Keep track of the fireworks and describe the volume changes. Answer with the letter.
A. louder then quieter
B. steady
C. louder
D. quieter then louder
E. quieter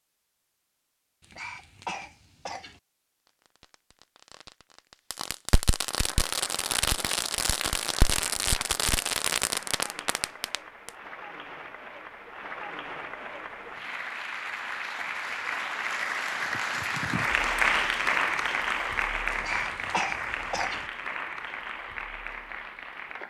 C.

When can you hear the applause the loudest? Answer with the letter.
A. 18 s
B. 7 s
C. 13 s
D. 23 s
A.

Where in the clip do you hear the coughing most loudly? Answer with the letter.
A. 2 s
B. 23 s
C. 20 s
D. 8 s
C.